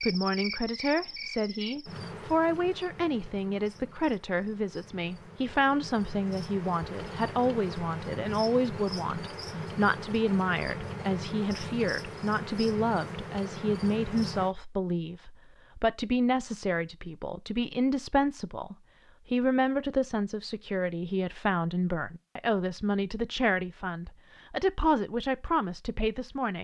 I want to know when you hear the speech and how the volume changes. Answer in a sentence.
The speech can be heard from 0.0 to 26.5 s, at a steady volume.